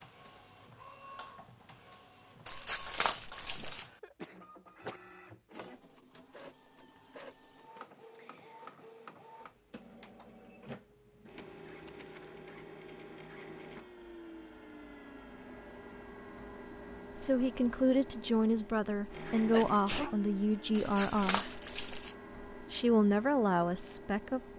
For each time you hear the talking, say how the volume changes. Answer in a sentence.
The talking can be heard from 17.1 to 21.5 s, at a steady volume; and briefly from 22.5 to 24.5 s.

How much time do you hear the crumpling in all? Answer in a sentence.
The crumpling can be heard for 3 seconds in total.